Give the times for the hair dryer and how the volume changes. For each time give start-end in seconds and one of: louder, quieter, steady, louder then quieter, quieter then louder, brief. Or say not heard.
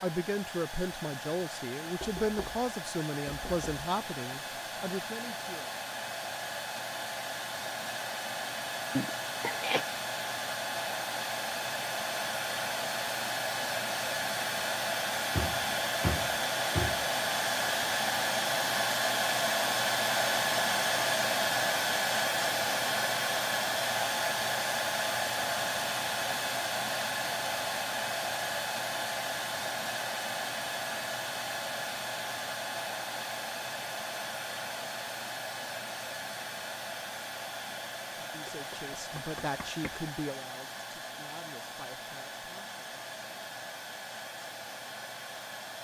0.0-45.7 louder then quieter.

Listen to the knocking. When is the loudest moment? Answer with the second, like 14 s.
16 s.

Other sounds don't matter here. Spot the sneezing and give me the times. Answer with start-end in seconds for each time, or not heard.
8.9-9.8.